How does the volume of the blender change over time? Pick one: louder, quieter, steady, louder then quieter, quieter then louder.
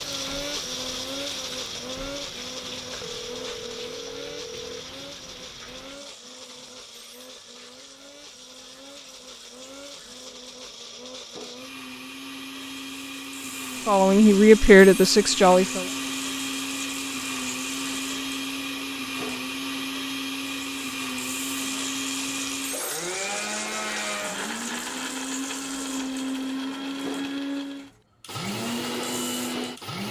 quieter then louder.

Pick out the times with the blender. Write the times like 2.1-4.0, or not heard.
0.0-30.0.